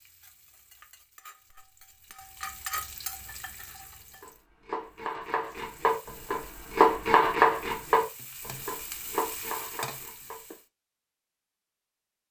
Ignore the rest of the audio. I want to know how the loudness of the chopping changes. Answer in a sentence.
The loudness of the chopping goes up, then down.